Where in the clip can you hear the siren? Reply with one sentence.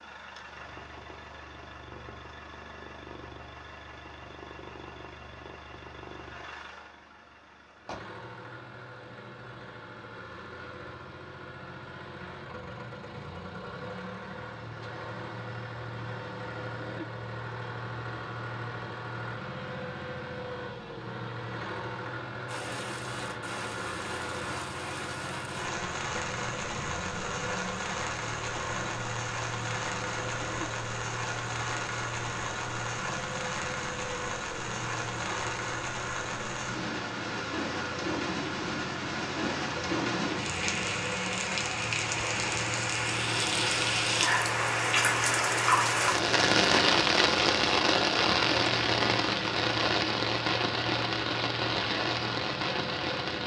The siren can't be heard in this clip.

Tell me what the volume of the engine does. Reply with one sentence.
The volume of the engine goes up.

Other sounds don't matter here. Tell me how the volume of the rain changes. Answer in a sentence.
The volume of the rain goes up.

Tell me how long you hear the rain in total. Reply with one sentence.
The rain can be heard for 31 seconds in total.